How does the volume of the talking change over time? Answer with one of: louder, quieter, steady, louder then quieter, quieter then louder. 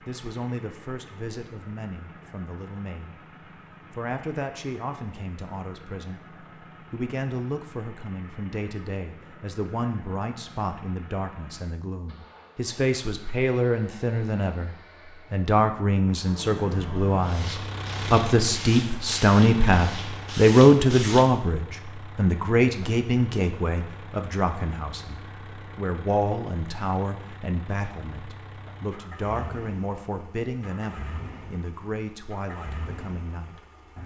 louder then quieter.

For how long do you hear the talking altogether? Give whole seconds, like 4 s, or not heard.
33 s.